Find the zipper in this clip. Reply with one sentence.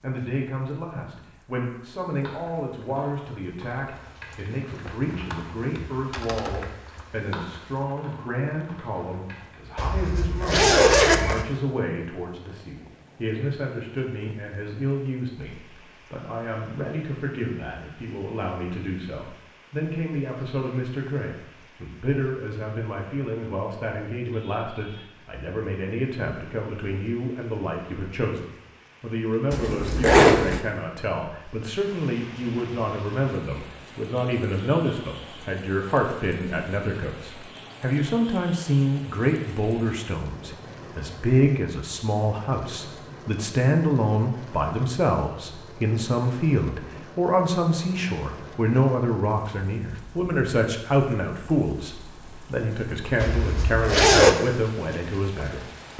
You can hear the zipper from 9.8 to 11.4 s, from 29.5 to 30.6 s and from 53.2 to 54.4 s.